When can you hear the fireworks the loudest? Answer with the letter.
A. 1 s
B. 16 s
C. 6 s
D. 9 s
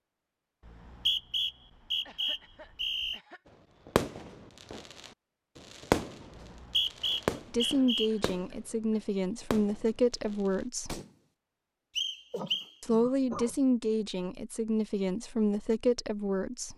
C.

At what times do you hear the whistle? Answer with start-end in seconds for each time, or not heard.
0.7-3.2, 6.3-8.1, 11.9-12.7.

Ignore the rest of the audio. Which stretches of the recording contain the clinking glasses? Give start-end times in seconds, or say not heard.
not heard.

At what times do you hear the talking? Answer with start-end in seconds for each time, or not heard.
7.5-11.0, 12.8-16.7.